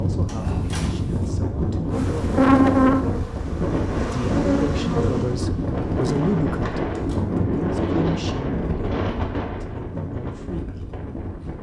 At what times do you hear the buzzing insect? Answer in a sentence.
You can hear the buzzing insect from 1.9 to 7.1 s.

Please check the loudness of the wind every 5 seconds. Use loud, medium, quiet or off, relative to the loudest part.
loud, loud, medium.